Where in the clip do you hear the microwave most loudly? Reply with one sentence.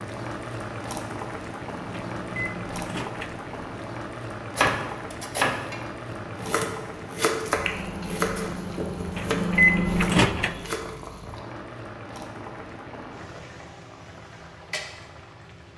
The volume of the microwave peaks at 10 seconds.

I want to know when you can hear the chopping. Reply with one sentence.
The chopping can be heard from 4.5 to 10.9 s.